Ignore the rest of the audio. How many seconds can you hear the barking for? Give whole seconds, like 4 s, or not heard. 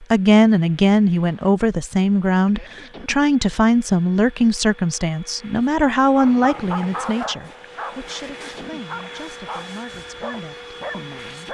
5 s.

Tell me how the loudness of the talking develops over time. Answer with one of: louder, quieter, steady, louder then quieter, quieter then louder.
quieter.